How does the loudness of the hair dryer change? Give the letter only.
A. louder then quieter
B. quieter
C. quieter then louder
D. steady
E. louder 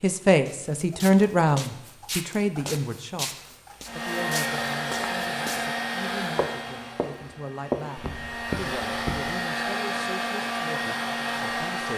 C.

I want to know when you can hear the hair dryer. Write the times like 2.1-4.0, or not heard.
3.9-11.9.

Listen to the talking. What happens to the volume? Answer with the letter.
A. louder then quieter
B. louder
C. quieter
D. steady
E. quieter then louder
C.